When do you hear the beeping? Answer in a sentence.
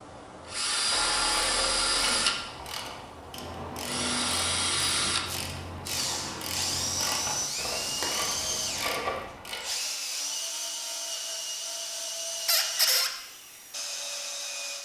The beeping can't be heard in this clip.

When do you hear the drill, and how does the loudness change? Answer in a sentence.
The drill can be heard from 0.0 to 14.8 s, getting quieter.